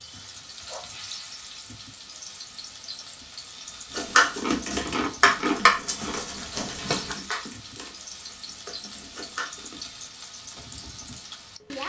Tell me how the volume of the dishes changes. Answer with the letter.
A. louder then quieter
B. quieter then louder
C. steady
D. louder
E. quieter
E.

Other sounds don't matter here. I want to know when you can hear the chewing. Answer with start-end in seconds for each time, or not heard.
4.3-6.2.